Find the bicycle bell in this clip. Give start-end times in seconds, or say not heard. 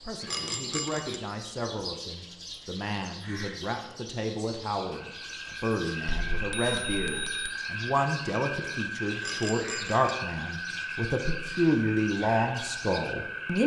0.2-1.2, 6.3-7.5, 9.2-10.2.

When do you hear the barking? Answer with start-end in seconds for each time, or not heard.
not heard.